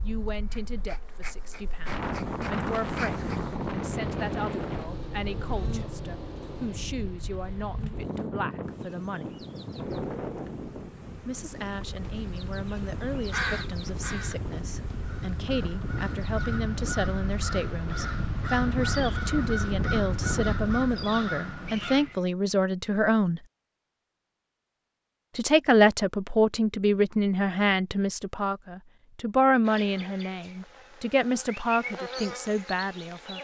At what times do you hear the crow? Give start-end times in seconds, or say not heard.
13.1-22.2.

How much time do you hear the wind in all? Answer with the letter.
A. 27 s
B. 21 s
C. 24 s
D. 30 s
B.